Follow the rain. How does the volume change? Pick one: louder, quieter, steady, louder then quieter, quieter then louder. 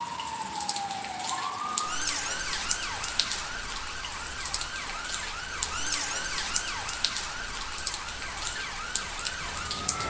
steady.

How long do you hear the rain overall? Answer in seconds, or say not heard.
10 s.